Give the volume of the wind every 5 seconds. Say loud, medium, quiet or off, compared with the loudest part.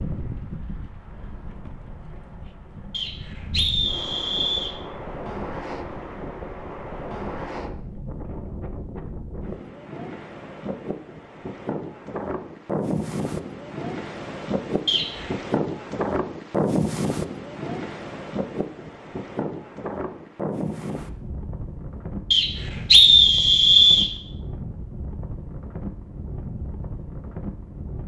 medium, medium, loud, loud, medium, medium.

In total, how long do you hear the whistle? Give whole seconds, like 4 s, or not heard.
4 s.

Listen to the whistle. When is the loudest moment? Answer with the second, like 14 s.
23 s.